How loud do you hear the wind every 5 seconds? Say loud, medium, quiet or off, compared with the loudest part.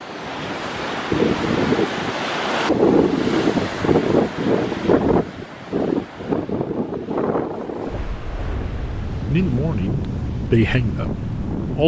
loud, medium, medium.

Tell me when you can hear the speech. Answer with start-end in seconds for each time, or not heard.
9.2-11.8.